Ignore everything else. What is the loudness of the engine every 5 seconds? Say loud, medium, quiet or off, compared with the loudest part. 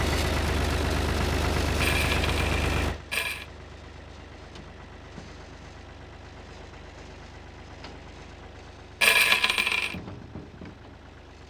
loud, quiet, quiet.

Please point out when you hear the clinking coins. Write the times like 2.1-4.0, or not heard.
1.8-3.5, 9.0-9.9.